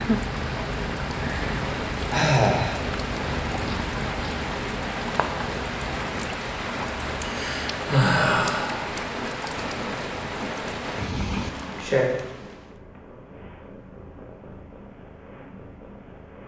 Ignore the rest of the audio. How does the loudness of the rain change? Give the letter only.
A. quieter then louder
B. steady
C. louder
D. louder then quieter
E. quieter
B.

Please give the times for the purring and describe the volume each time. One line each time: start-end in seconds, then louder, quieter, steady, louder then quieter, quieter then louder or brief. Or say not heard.
0.0-16.4 quieter.